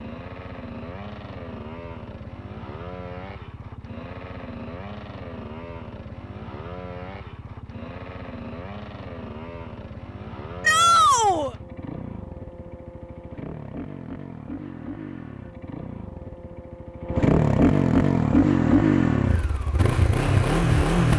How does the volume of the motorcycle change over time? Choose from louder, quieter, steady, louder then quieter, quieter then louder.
louder.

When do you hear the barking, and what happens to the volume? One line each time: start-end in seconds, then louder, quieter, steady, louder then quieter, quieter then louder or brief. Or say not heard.
not heard.